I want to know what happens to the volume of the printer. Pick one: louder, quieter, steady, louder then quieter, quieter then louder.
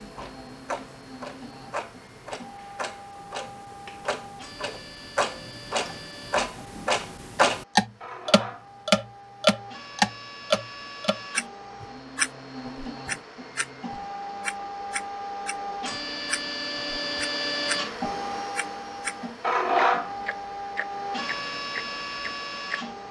louder.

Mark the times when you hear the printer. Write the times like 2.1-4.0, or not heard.
0.0-23.0.